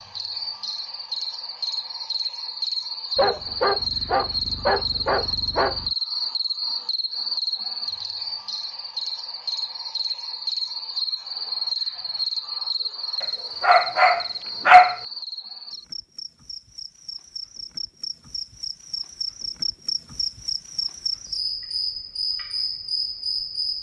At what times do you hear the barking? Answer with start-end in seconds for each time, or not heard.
3.1-5.9, 13.6-14.9.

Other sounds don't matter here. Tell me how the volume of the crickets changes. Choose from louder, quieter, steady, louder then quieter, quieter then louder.
quieter then louder.